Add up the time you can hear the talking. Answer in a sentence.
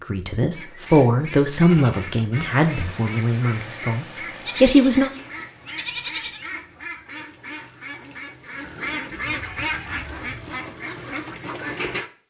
You can hear the talking for 5 seconds altogether.